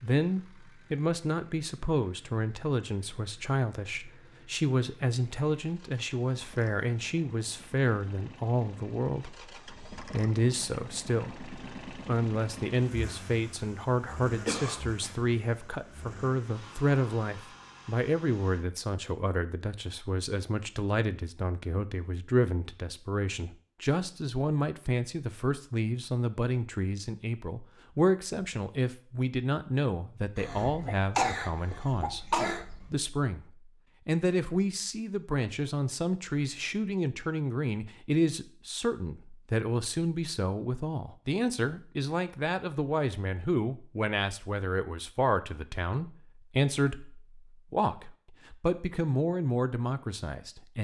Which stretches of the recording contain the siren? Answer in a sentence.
The siren can't be heard in this clip.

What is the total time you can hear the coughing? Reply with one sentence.
The coughing can be heard for 3 seconds in total.